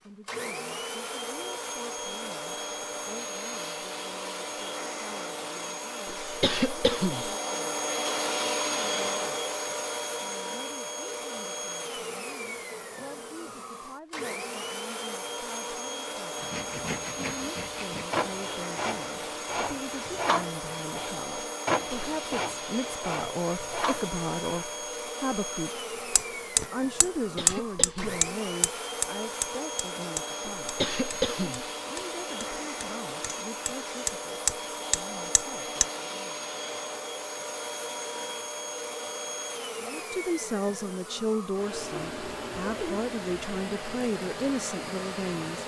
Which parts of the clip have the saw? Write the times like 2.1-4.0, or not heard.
16.4-24.7.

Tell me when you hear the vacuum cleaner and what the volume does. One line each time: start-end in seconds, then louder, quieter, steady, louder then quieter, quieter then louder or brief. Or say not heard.
0.0-45.6 steady.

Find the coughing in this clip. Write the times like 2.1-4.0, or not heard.
6.2-7.3, 27.1-28.2, 30.6-31.6.